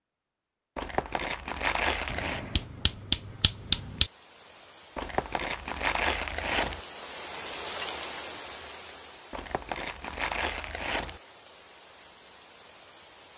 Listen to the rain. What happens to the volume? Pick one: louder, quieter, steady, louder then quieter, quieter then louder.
louder then quieter.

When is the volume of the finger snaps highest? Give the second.
4 s.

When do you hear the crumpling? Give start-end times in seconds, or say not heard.
0.8-2.5, 5.0-6.8, 9.3-11.2.